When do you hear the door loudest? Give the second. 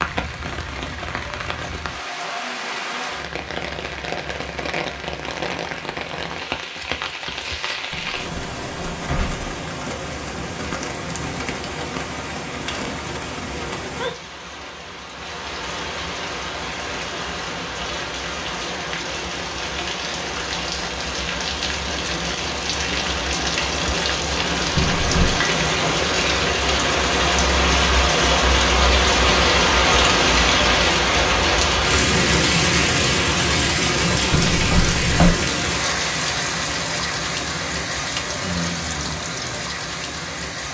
35 s.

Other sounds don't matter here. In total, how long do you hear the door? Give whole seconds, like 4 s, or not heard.
3 s.